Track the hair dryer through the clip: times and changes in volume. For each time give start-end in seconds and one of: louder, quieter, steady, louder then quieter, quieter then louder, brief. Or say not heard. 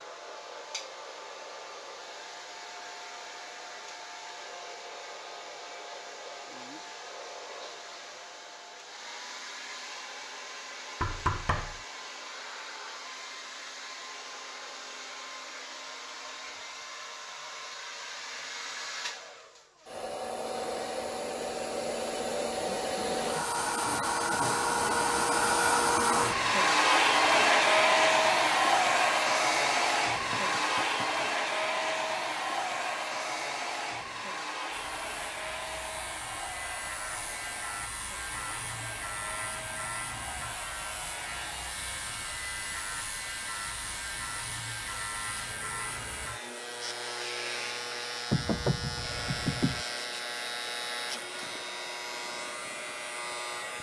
0.0-53.7 louder then quieter.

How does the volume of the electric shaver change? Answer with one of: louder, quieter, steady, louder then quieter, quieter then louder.
steady.